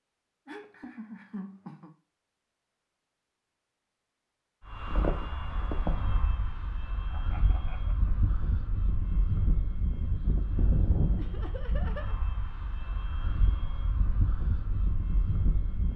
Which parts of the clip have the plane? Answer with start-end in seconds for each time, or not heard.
4.7-15.9.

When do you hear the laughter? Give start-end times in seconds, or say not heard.
0.5-1.9, 7.1-8.2, 11.2-12.2.